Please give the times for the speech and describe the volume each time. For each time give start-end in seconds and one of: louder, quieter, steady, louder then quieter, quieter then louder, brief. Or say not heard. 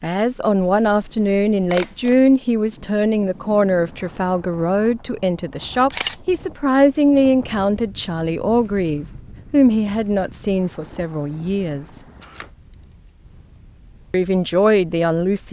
0.0-12.0 steady
14.1-15.4 brief.